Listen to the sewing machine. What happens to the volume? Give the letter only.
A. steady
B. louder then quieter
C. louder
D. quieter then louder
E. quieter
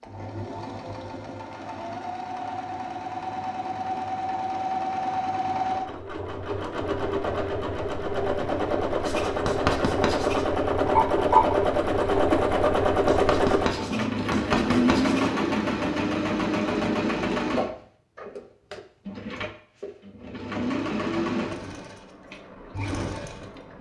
B.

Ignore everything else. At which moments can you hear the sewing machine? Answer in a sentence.
You can hear the sewing machine from 0.0 to 23.7 s.